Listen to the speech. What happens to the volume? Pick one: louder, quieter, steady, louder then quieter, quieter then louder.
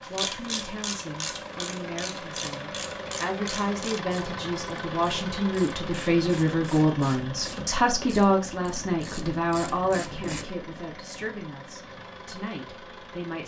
louder then quieter.